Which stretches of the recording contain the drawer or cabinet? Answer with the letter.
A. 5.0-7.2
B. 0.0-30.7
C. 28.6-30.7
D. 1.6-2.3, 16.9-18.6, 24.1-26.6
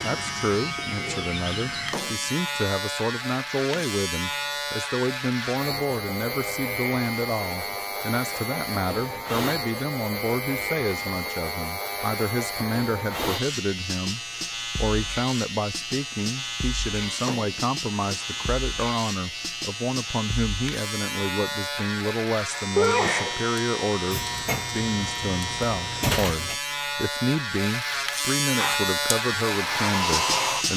D.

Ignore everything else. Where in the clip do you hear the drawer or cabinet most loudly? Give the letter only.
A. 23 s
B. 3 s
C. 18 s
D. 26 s
D.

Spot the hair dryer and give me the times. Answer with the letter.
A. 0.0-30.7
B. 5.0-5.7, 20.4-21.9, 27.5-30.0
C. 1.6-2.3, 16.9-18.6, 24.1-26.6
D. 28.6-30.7
D.